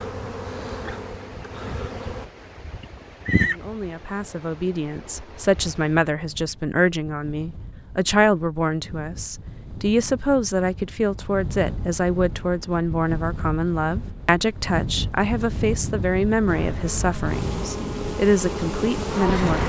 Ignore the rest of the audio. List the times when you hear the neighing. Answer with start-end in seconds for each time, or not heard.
2.8-3.5.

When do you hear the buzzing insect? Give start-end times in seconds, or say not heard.
0.0-2.3, 16.4-19.6.